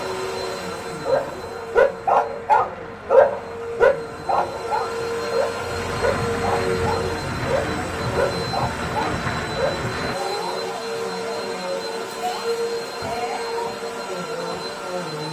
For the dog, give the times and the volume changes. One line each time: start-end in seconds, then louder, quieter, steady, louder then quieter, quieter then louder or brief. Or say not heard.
1.1-9.8 quieter.